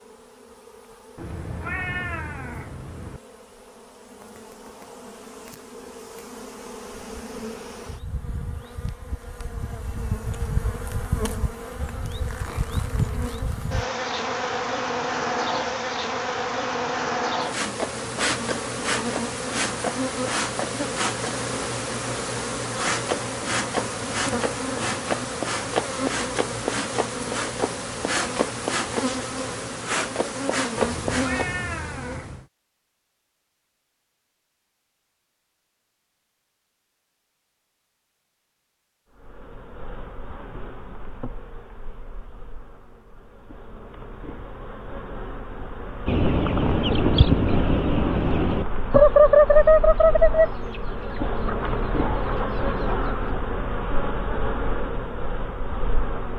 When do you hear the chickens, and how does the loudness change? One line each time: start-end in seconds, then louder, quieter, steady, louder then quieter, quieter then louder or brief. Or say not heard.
46.0-53.3 louder then quieter.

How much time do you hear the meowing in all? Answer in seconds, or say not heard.
4 s.